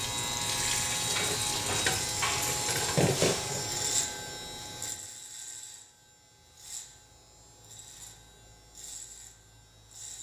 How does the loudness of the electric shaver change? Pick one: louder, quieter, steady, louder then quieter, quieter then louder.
quieter.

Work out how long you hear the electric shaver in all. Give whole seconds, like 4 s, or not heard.
10 s.